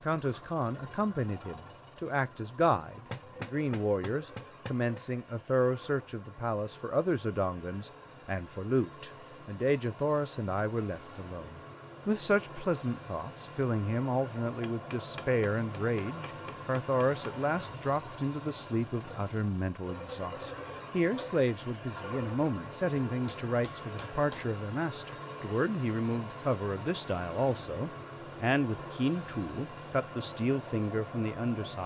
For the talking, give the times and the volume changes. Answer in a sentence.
You can hear the talking from 0.1 to 31.8 s, at a steady volume.